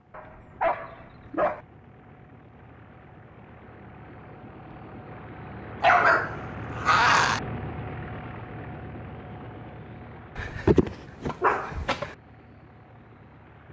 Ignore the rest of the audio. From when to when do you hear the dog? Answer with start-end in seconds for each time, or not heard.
0.1-1.6, 5.8-7.4, 10.3-12.1.